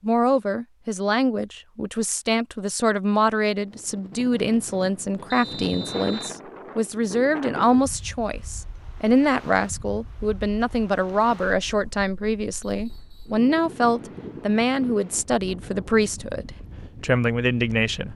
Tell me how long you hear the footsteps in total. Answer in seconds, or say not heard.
not heard.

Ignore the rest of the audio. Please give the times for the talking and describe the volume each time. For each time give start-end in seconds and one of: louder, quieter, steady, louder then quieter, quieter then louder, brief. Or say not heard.
0.0-18.1 steady.